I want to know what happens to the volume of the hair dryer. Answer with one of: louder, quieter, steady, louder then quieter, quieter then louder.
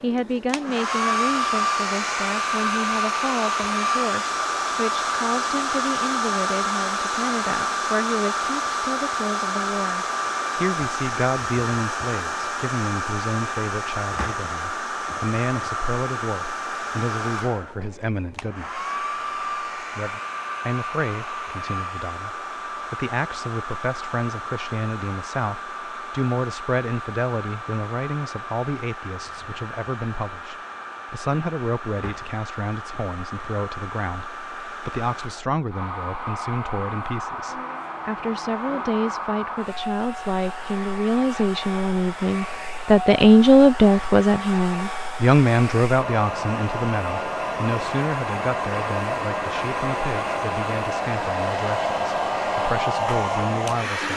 quieter then louder.